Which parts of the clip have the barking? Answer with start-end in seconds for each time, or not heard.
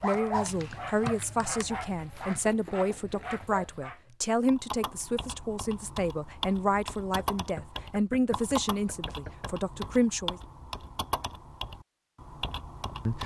0.0-4.2.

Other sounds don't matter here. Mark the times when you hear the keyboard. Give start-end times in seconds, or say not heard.
0.0-1.6, 4.5-13.2.